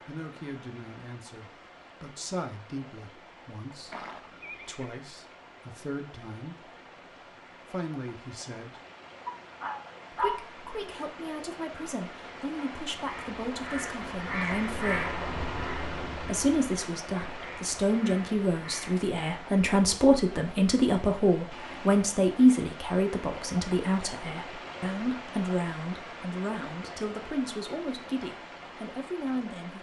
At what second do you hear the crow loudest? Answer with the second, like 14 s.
15 s.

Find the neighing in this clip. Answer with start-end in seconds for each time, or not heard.
3.9-5.0.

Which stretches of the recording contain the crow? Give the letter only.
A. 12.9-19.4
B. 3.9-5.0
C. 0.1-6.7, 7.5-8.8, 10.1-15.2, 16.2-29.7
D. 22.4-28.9
A.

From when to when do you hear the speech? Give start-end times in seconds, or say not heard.
0.1-6.7, 7.5-8.8, 10.1-15.2, 16.2-29.7.